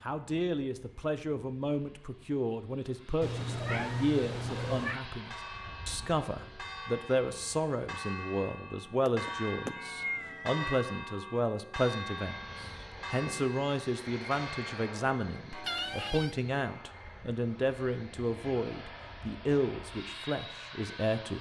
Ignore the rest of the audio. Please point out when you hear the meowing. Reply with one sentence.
You can hear the meowing from 3.2 to 5.0 s, from 9.1 to 10.8 s and from 15.7 to 16.4 s.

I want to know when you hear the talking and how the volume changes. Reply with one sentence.
The talking can be heard from 0.0 to 21.3 s, at a steady volume.